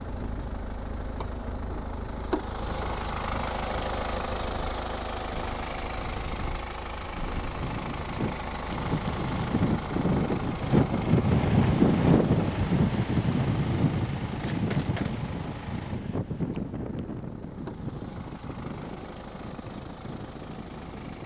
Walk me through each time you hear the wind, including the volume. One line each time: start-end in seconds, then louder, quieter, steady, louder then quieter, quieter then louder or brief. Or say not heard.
0.0-21.2 louder then quieter.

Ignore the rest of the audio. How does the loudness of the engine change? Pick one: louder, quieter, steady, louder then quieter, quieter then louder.
quieter.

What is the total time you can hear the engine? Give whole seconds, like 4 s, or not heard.
21 s.